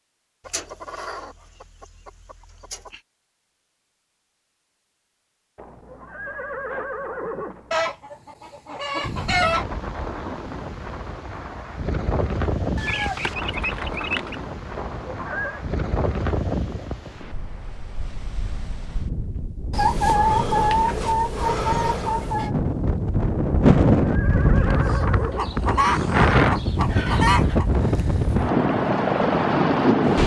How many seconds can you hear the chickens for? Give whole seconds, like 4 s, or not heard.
11 s.